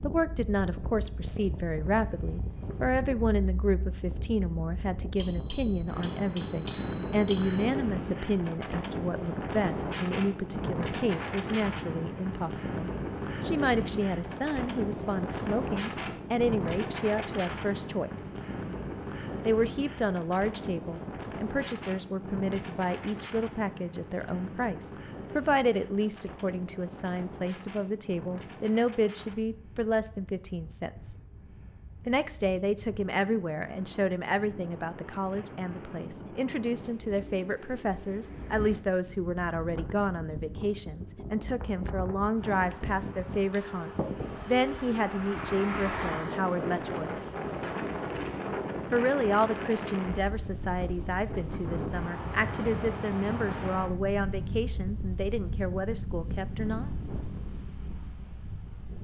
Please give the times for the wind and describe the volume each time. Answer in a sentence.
You can hear the wind from 0.0 to 58.9 s, getting quieter then louder.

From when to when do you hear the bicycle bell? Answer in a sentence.
The bicycle bell can be heard from 5.2 to 7.7 s.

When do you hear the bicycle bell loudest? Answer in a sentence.
The volume of the bicycle bell peaks at 7 seconds.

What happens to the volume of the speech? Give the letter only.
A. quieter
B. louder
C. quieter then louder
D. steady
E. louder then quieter
D.